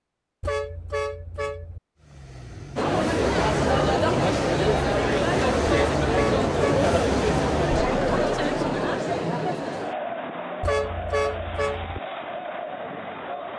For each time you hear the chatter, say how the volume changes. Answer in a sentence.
The chatter can be heard from 2.8 to 13.5 s, getting quieter.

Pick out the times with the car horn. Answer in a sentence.
You can hear the car horn from 0.4 to 1.8 s, from 5.7 to 6.9 s and from 10.6 to 12.0 s.